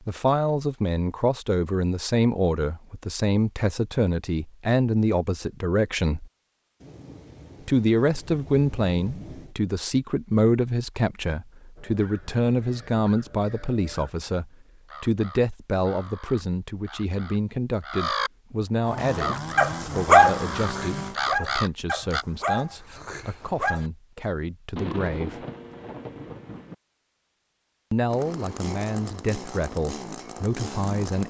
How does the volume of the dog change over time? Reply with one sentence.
The loudness of the dog goes down.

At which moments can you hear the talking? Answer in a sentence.
You can hear the talking from 0.1 to 6.3 s, from 7.7 to 25.4 s and from 27.9 to 31.2 s.